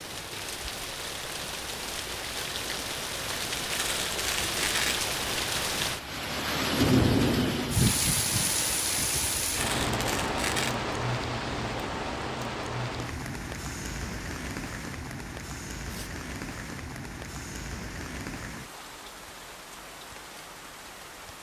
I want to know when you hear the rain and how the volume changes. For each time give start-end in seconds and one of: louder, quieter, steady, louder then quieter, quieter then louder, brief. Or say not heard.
0.0-21.3 louder then quieter.